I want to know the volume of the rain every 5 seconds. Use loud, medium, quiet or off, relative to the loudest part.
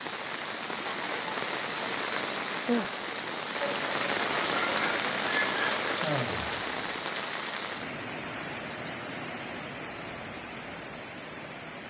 loud, loud, medium.